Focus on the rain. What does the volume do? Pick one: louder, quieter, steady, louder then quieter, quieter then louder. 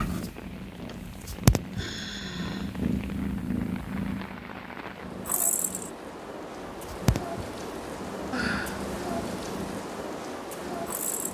louder.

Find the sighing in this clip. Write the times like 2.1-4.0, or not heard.
0.8-2.8, 8.3-8.8.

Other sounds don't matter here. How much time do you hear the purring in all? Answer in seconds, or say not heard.
11 s.